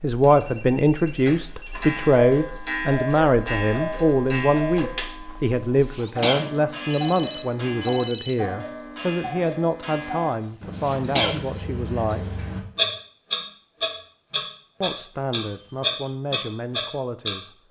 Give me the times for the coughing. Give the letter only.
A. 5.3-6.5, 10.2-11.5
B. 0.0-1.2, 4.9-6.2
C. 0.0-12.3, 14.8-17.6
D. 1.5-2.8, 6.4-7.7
A.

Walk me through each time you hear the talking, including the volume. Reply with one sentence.
You can hear the talking from 0.0 to 12.3 s, getting quieter; and briefly from 14.8 to 17.6 s.